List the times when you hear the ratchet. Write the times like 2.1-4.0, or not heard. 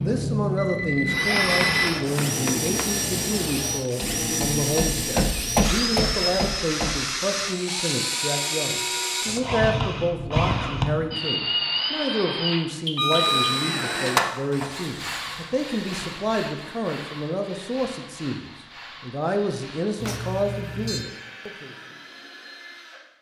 not heard.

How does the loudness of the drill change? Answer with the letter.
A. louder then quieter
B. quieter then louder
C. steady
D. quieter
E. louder
D.